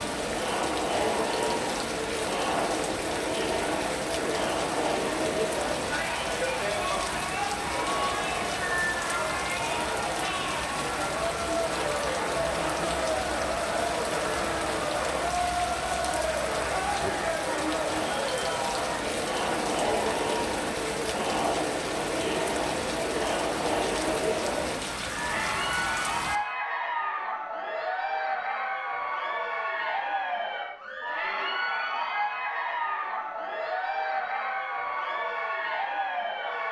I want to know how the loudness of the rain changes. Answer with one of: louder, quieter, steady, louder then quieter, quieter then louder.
steady.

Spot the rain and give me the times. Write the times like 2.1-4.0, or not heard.
0.0-26.4.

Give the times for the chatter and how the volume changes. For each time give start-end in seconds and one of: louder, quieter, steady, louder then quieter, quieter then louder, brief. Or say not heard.
0.0-36.6 steady.